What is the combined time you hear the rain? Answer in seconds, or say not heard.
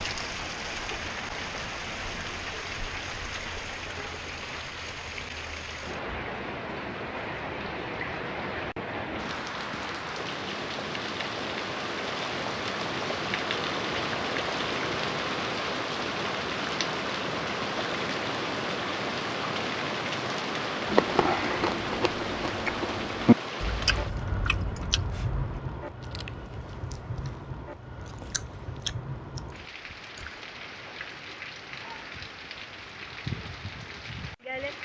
35 s.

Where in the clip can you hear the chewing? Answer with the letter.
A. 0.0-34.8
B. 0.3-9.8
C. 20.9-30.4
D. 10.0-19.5
C.